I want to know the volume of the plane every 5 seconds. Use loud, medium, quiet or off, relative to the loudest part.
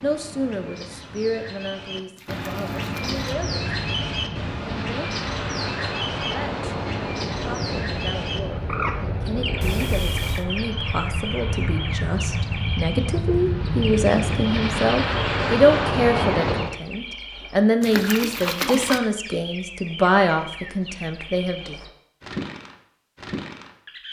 medium, medium, medium, loud, off.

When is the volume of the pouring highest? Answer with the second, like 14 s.
19 s.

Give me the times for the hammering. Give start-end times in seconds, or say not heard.
not heard.